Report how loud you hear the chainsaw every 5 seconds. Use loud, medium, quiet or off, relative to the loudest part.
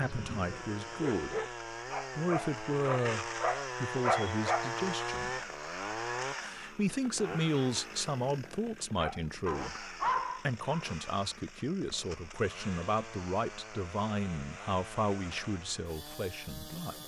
loud, loud, medium, medium.